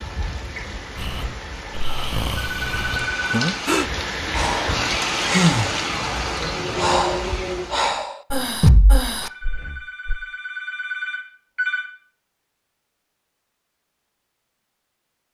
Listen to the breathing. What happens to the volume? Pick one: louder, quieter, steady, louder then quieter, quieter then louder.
louder then quieter.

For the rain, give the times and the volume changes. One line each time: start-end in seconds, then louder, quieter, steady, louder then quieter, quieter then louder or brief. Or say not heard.
0.0-8.1 louder.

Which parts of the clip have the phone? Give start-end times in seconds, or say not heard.
2.4-3.4, 9.2-11.9.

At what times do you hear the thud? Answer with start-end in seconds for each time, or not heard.
8.6-9.0.